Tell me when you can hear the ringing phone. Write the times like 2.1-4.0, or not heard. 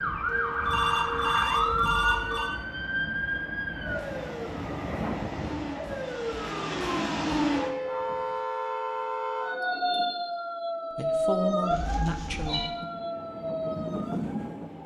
0.2-2.5, 11.7-12.7.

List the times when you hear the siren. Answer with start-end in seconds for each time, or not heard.
0.0-14.8.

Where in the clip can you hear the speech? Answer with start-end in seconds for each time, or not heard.
10.9-12.8.